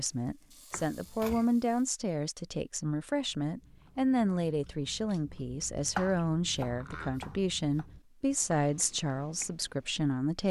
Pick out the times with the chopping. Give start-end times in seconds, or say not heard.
0.7-1.4, 6.0-7.8.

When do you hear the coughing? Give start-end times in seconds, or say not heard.
not heard.